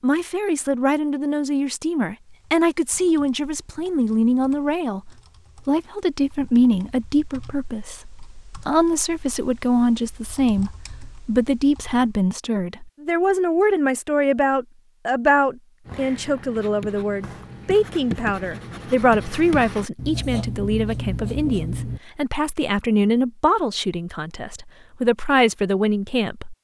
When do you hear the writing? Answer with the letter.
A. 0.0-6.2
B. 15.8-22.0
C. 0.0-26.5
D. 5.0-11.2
B.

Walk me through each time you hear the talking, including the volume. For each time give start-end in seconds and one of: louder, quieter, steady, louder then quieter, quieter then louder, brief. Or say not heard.
0.0-26.5 steady.